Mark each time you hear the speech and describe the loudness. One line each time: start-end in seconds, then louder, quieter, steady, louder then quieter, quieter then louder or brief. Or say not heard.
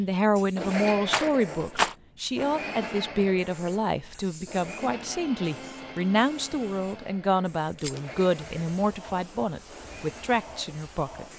0.0-11.2 steady.